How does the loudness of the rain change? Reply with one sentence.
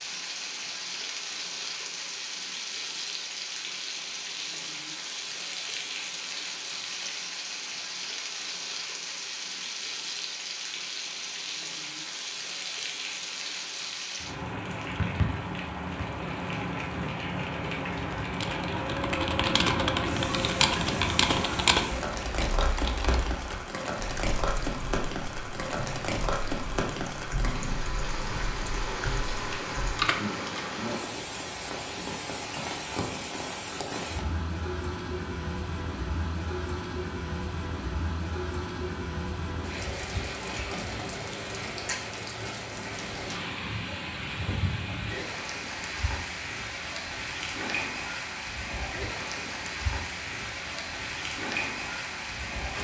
The loudness of the rain stays about the same.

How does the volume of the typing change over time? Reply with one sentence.
The loudness of the typing goes down, then up.